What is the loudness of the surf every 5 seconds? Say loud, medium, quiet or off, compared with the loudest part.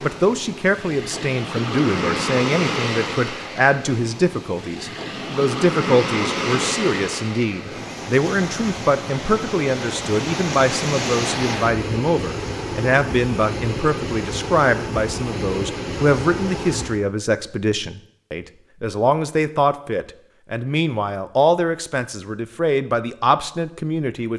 loud, loud, loud, loud, off.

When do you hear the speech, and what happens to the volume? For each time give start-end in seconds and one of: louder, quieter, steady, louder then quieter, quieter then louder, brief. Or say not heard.
0.0-24.3 steady.